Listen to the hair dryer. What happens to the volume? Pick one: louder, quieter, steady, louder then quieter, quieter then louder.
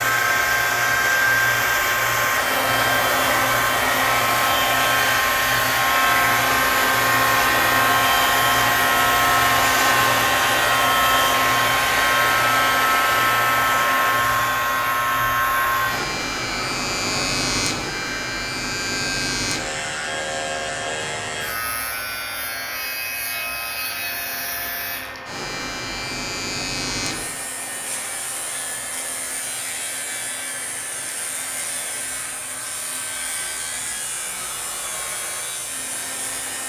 quieter.